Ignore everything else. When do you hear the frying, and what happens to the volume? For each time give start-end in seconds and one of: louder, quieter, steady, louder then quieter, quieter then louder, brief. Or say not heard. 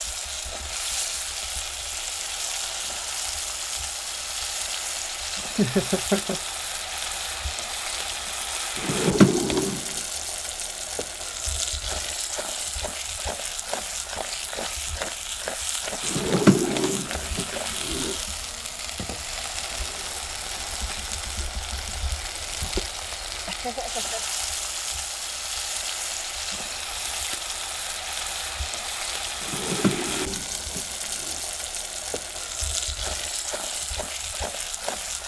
0.0-35.2 steady.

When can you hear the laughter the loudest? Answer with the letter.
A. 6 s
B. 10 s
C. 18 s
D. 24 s
A.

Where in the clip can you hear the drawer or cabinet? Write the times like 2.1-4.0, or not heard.
8.8-9.8, 16.1-18.1, 29.4-31.4.